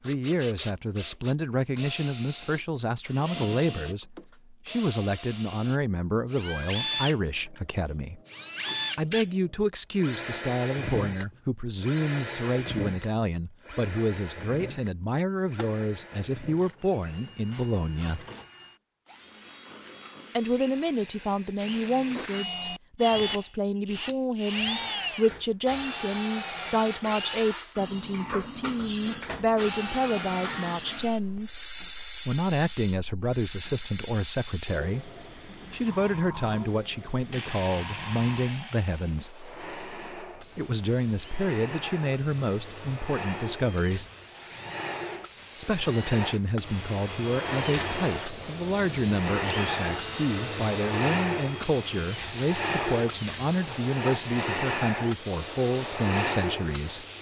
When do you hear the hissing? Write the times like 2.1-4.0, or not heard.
27.8-57.1.